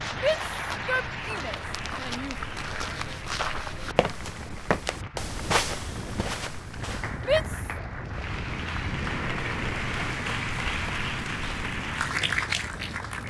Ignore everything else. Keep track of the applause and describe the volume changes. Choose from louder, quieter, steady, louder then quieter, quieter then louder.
quieter then louder.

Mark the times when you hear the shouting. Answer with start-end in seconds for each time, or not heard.
0.1-2.4, 7.2-7.7.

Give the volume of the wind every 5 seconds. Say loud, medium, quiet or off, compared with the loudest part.
medium, loud, loud.